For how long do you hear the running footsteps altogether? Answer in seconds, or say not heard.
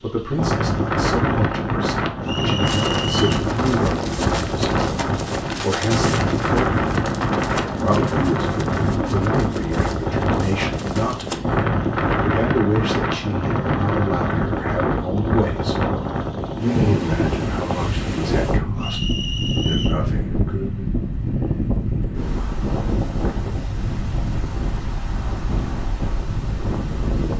9 s.